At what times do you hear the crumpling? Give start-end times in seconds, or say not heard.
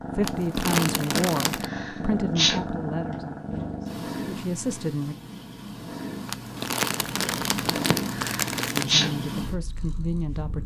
0.2-1.6, 6.2-8.9.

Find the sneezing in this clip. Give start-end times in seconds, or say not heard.
1.6-2.6, 8.1-9.1.